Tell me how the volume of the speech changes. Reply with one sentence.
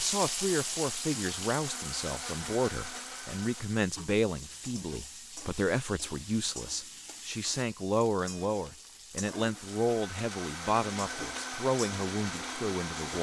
The loudness of the speech stays about the same.